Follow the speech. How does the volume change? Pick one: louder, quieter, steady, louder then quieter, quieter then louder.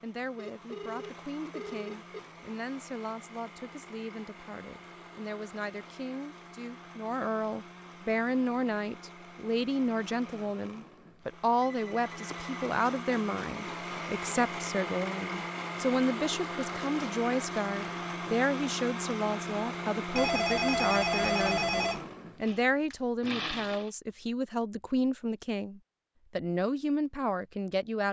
louder.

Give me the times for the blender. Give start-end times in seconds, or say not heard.
0.0-23.9.